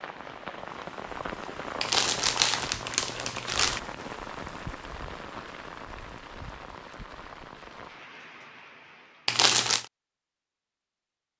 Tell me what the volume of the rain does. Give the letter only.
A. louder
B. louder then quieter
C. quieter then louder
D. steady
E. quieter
E.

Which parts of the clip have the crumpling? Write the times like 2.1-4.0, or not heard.
1.8-3.8, 9.2-9.8.